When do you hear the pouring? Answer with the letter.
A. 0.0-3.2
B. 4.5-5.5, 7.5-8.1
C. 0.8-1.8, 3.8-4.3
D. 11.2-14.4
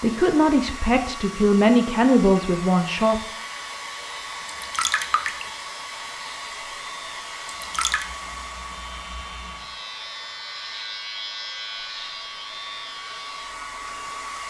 B.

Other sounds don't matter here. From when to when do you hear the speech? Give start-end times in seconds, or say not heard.
0.0-3.2.